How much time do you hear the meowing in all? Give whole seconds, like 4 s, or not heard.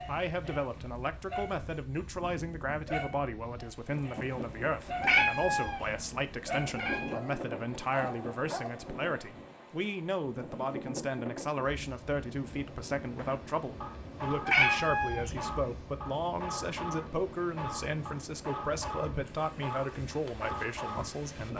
4 s.